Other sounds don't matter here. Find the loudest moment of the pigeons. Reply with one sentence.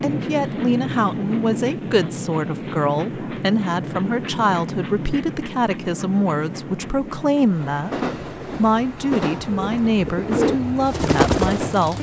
The loudest moment of the pigeons is at 11 seconds.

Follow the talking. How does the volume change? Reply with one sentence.
The volume of the talking stays about the same.